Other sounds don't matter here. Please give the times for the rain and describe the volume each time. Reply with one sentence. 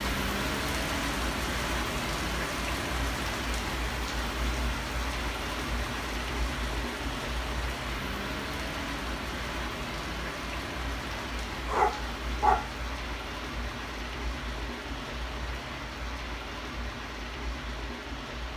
The rain can be heard from 0.0 to 18.5 s, getting quieter.